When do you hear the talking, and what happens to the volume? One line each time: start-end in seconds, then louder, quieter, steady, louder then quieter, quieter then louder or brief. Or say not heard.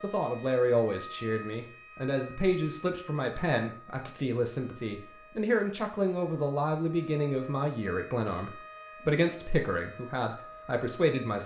0.0-11.4 steady.